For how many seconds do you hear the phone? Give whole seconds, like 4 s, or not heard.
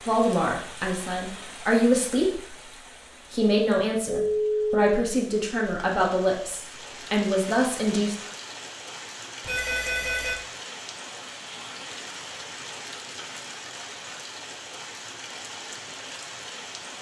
2 s.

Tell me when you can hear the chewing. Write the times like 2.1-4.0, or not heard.
not heard.